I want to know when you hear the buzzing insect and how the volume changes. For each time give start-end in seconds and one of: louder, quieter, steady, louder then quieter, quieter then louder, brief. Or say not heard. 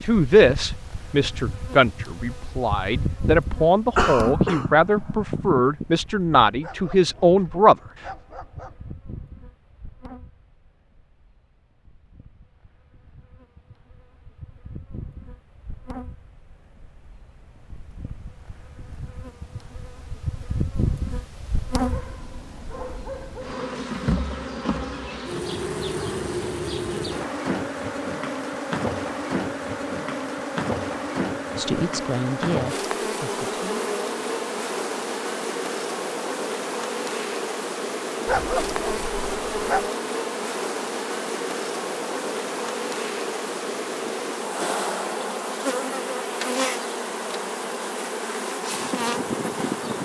0.0-50.0 quieter then louder.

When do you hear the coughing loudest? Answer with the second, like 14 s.
4 s.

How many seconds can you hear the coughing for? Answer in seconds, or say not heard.
2 s.